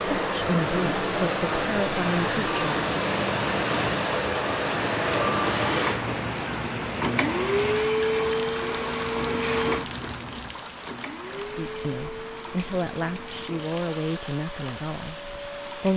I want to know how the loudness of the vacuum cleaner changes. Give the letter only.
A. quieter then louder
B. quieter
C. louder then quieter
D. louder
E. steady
B.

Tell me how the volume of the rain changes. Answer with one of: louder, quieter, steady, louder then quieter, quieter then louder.
quieter.